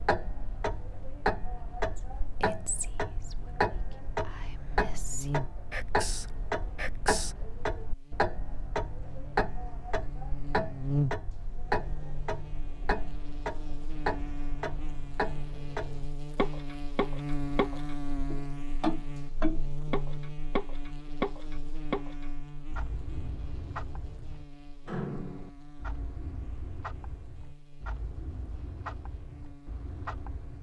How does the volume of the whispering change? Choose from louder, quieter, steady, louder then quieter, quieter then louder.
quieter then louder.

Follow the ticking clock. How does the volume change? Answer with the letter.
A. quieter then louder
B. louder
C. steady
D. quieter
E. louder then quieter
D.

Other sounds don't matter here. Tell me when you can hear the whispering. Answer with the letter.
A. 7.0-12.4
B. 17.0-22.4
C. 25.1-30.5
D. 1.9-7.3
D.